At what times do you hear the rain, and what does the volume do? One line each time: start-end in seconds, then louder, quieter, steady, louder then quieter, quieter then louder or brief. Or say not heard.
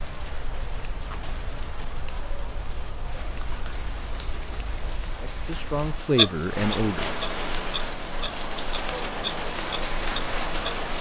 0.0-10.9 louder.